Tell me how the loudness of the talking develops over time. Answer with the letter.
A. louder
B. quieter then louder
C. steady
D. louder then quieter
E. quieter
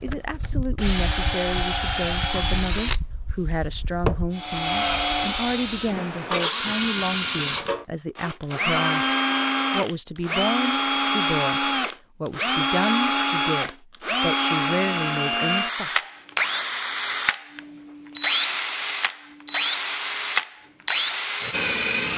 C.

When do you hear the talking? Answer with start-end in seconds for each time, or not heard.
0.0-9.1, 9.7-16.1.